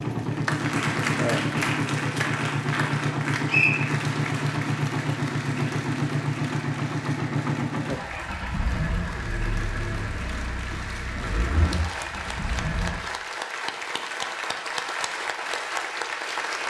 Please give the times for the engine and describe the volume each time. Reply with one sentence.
The engine can be heard from 0.0 to 13.1 s, getting quieter.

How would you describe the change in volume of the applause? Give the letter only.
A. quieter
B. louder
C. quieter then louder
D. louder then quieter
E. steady
C.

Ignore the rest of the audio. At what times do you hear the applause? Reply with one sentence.
You can hear the applause from 0.0 to 16.6 s.